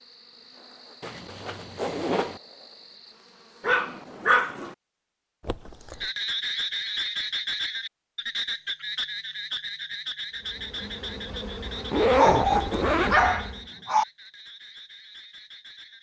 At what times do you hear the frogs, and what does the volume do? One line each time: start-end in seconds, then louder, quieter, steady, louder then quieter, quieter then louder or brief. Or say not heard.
6.0-15.9 quieter.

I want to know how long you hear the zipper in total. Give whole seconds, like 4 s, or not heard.
3 s.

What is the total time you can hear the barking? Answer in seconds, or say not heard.
3 s.